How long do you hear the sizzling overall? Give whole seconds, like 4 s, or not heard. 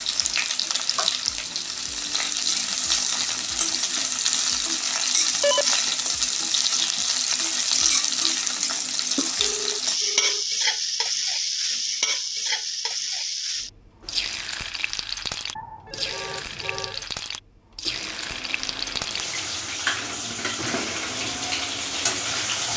23 s.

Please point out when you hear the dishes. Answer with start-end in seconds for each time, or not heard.
not heard.